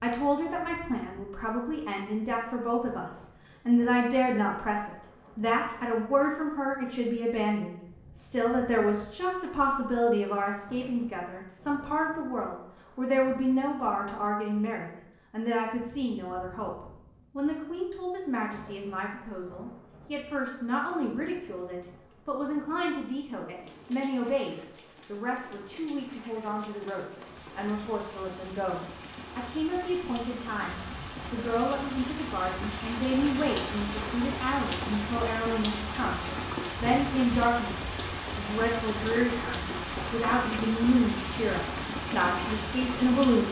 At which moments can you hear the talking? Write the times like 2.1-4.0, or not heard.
0.0-37.8, 38.4-43.4.